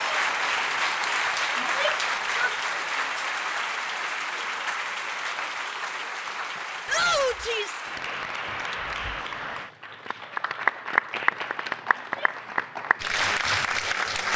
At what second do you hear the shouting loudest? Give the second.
7 s.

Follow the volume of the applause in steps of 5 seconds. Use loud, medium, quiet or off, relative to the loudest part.
loud, medium, loud.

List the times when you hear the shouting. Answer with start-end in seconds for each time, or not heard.
1.6-2.5, 6.8-7.8, 11.9-12.4.